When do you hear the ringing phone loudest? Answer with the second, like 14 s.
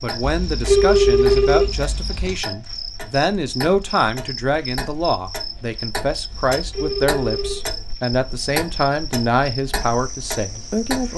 1 s.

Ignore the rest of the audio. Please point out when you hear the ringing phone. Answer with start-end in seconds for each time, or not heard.
0.2-2.4, 6.3-7.7.